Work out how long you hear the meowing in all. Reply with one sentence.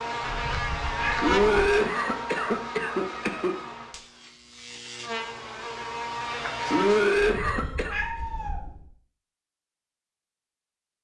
The meowing can be heard for 3 seconds in total.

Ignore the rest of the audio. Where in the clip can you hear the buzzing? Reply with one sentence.
You can hear the buzzing from 0.0 to 7.3 s.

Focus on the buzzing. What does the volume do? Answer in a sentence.
The volume of the buzzing goes down, then up.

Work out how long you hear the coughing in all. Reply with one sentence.
The coughing can be heard for 4 seconds in total.